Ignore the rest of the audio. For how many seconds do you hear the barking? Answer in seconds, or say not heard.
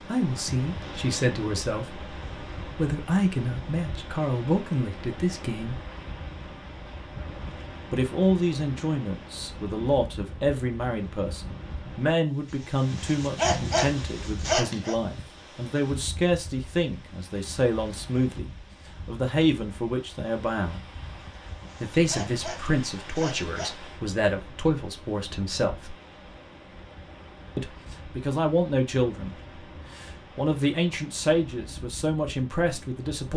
5 s.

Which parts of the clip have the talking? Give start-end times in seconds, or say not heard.
0.1-2.0, 2.8-5.8, 7.9-20.9, 21.8-25.9, 27.6-29.4, 29.9-33.3.